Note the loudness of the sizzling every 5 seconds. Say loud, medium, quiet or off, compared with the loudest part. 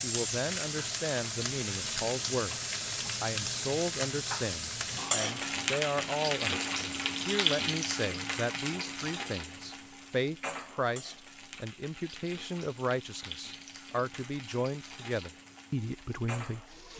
loud, loud, quiet, quiet.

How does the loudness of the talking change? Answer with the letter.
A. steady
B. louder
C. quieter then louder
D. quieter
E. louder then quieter
A.